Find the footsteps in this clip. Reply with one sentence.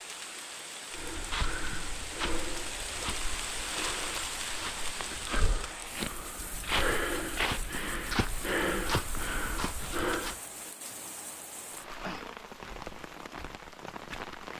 The footsteps can be heard from 0.9 to 10.3 s.